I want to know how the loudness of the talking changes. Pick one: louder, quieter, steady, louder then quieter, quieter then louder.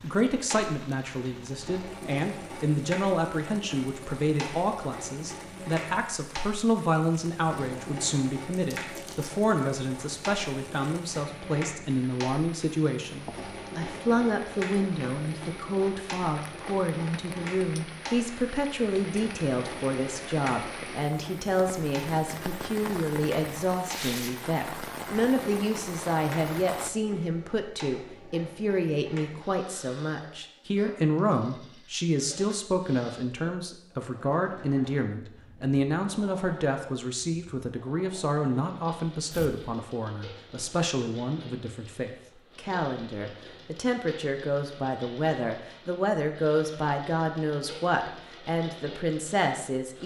steady.